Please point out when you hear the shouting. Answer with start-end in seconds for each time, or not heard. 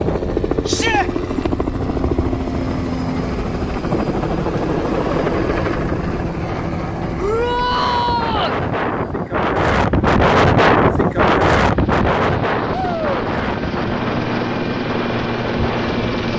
0.7-1.1, 7.2-8.6, 12.7-13.2.